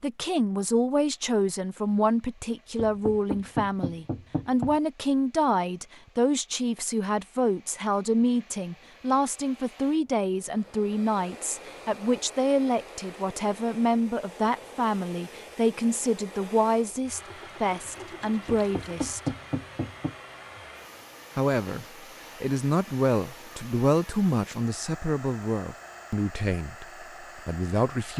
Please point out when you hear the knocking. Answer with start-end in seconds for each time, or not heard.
2.8-4.8, 18.4-20.1.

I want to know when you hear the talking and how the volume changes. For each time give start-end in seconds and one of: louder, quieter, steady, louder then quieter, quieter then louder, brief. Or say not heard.
0.0-19.3 steady
21.4-28.1 quieter.